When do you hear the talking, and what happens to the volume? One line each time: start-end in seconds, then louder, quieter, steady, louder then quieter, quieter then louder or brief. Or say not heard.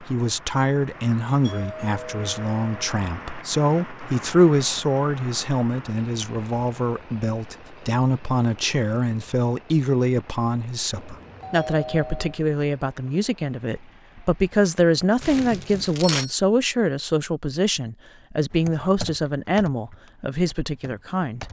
0.0-21.4 steady.